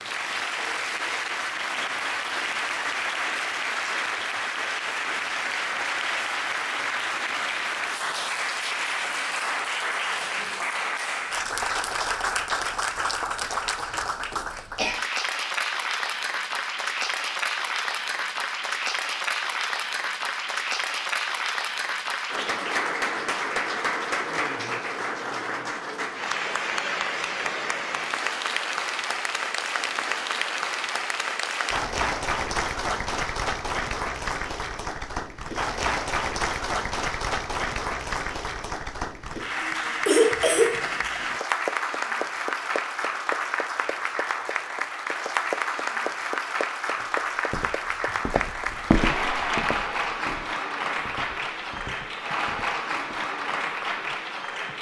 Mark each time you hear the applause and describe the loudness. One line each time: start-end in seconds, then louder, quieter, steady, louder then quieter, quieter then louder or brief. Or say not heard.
0.0-54.7 steady.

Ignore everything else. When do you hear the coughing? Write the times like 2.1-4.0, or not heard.
13.9-14.9, 40.0-40.8.